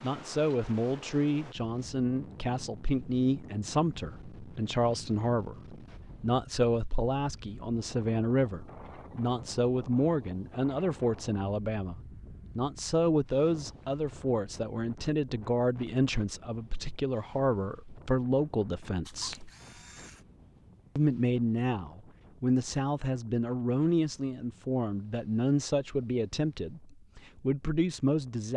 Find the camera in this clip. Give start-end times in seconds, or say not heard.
19.1-20.2.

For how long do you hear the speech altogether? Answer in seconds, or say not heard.
27 s.